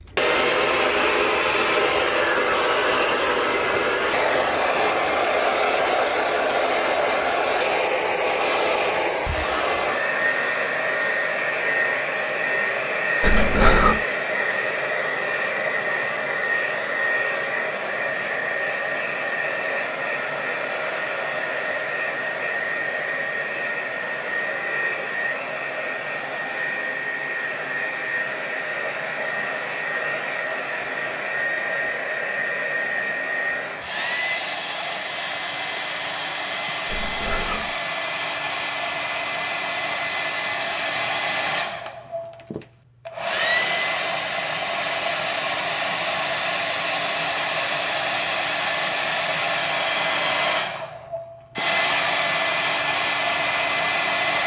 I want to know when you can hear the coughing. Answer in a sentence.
The coughing can be heard from 13.2 to 14.0 s and from 36.9 to 37.8 s.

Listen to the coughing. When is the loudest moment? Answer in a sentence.
The loudest moment of the coughing is at 14 seconds.